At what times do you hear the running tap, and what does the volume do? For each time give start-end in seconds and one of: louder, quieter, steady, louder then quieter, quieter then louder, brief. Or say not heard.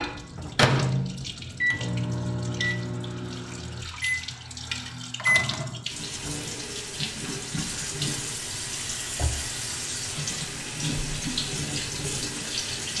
0.0-12.9 louder.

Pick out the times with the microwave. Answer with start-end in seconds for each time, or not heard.
0.0-5.8.